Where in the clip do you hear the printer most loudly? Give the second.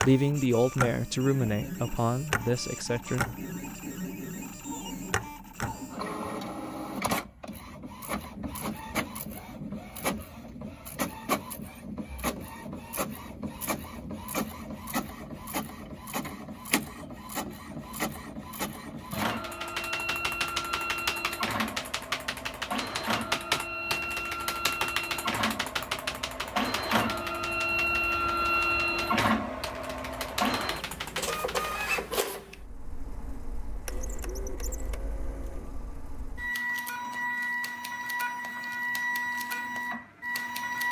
29 s.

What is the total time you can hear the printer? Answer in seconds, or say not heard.
41 s.